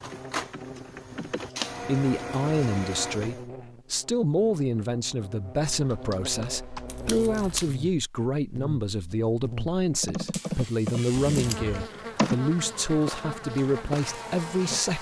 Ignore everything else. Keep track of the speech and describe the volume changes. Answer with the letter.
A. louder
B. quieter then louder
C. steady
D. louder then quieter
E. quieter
C.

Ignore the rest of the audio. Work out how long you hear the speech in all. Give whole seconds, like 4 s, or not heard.
13 s.